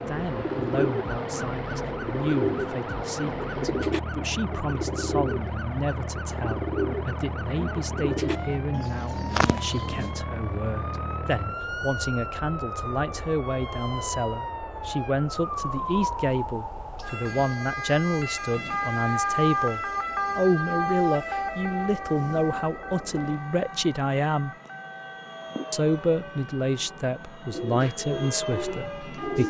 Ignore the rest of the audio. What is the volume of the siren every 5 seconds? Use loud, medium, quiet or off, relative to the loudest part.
medium, medium, medium, loud, loud, quiet.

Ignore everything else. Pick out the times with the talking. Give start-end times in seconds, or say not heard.
0.1-24.5, 25.7-29.4.